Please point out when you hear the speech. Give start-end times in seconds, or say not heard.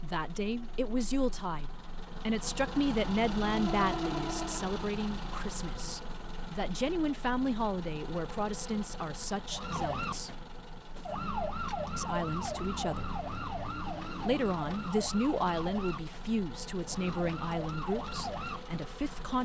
0.0-10.4, 11.9-13.1, 14.2-19.3.